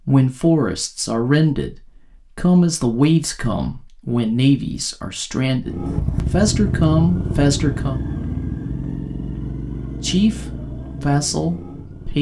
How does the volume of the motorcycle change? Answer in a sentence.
The volume of the motorcycle goes down.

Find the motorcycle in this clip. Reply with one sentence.
The motorcycle can be heard from 5.7 to 12.1 s.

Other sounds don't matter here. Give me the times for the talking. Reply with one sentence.
You can hear the talking from 0.1 to 8.0 s and from 10.0 to 12.1 s.